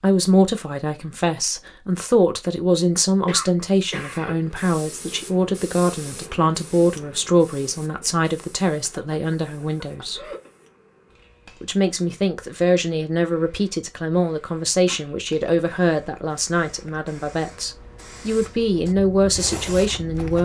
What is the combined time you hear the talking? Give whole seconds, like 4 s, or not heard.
19 s.